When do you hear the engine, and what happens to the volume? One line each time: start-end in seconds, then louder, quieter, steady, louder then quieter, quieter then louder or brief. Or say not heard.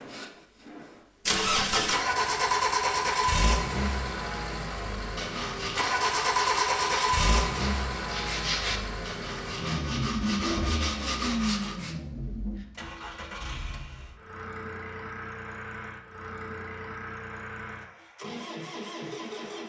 0.0-19.6 quieter.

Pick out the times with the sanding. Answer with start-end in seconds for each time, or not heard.
5.2-11.9.